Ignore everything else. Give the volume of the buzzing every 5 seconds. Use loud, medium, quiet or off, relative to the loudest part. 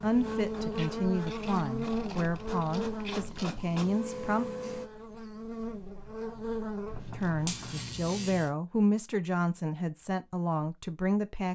loud, loud, off.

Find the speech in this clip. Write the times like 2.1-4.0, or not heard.
0.0-4.5, 7.2-11.4.